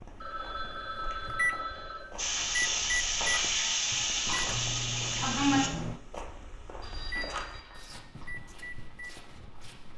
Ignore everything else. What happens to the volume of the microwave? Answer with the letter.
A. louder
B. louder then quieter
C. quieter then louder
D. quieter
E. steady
D.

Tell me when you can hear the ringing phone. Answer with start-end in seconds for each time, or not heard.
0.2-2.1, 6.8-8.3.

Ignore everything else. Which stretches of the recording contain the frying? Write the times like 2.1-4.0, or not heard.
2.1-5.7.